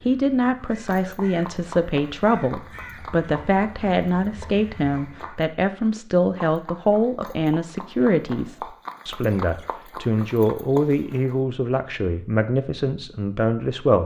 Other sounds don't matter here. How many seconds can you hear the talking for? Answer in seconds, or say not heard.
14 s.